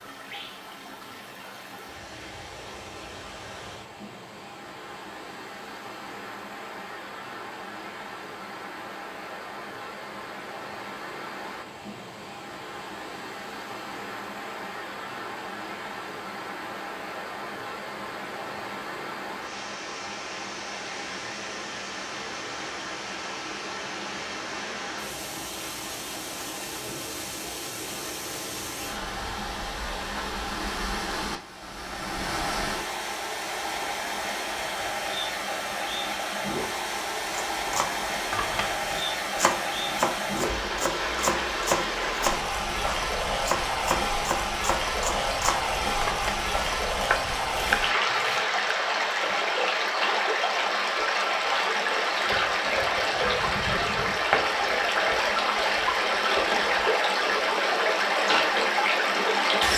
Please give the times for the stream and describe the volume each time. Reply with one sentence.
The stream can be heard from 0.0 to 59.7 s, getting louder.